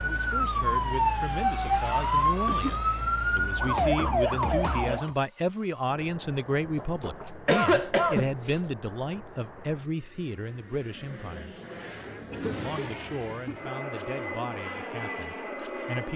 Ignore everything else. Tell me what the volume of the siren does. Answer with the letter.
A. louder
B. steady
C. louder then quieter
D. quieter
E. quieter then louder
B.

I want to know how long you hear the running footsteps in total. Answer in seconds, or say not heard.
not heard.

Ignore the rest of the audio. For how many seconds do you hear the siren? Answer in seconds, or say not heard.
5 s.